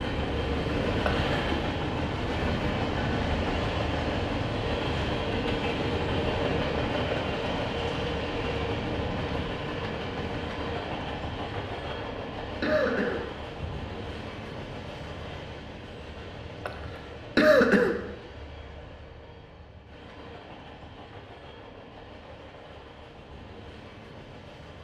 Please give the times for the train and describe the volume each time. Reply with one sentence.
You can hear the train from 0.0 to 24.7 s, getting quieter.